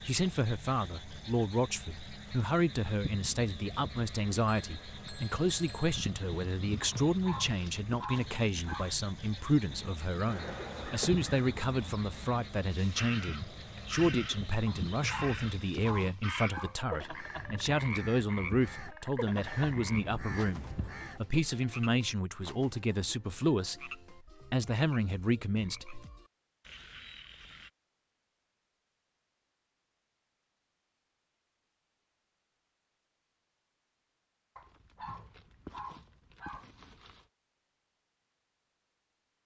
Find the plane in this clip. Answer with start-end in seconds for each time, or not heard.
not heard.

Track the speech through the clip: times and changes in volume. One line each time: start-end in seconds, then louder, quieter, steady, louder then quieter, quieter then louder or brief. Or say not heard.
0.0-26.1 steady.